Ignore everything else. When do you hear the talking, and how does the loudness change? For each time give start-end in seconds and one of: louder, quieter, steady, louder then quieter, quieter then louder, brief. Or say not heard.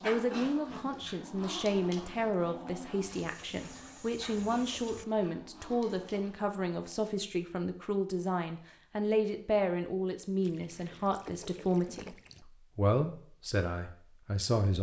0.0-14.7 steady.